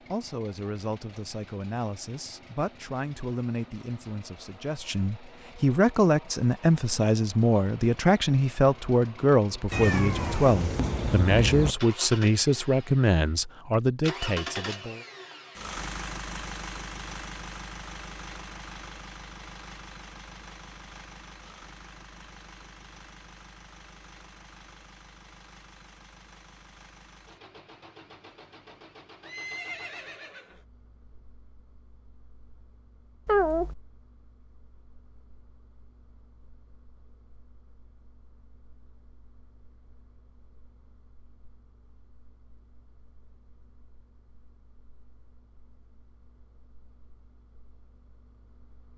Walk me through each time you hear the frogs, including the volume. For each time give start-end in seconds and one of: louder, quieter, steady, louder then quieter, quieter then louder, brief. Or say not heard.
not heard.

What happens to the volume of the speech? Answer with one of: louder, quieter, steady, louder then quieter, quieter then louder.
louder.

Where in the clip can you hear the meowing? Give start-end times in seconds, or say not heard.
9.7-11.8, 33.2-33.8.